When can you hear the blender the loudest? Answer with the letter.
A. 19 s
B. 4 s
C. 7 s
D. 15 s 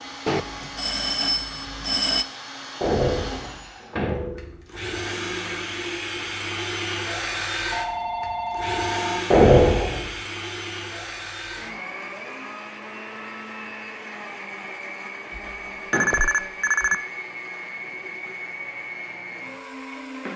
C.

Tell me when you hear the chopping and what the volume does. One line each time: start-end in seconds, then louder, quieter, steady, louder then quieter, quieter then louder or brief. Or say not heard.
not heard.